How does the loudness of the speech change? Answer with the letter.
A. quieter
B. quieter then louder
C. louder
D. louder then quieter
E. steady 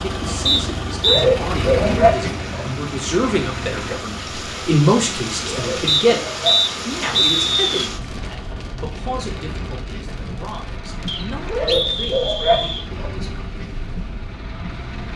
D.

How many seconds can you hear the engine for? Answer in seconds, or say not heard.
15 s.